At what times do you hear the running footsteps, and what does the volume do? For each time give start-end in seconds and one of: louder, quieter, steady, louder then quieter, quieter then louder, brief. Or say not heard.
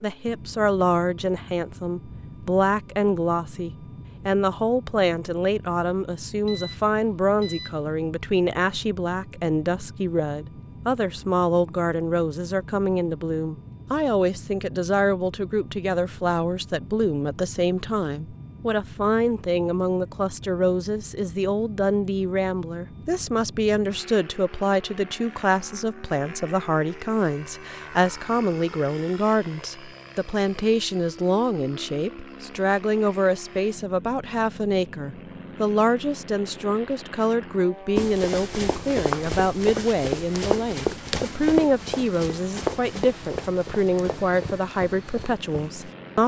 38.0-45.9 quieter.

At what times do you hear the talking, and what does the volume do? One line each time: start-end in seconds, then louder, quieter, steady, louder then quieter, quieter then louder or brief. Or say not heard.
0.0-46.2 steady.